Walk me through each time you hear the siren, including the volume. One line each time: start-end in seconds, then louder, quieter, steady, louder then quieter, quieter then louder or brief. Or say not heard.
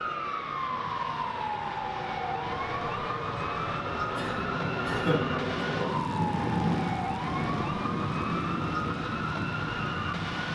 0.0-10.5 steady.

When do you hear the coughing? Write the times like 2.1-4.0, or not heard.
4.2-5.4.